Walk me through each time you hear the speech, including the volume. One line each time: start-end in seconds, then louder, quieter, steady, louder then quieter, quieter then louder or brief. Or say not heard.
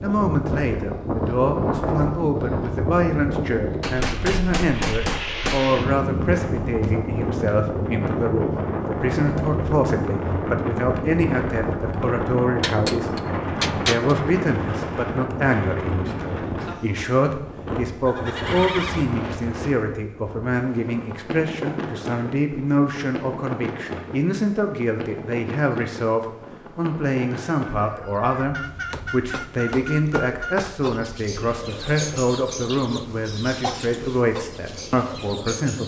0.0-35.8 steady.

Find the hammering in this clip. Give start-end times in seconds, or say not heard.
3.8-5.7, 12.6-14.2, 28.9-30.8.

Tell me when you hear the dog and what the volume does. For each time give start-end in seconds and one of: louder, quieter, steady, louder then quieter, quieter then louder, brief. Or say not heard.
not heard.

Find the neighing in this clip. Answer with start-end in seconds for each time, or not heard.
18.0-19.1.